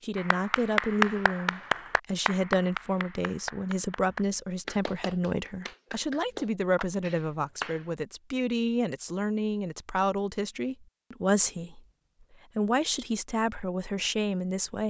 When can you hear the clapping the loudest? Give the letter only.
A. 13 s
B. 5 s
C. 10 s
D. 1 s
D.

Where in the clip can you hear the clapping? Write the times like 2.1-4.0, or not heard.
0.1-7.9.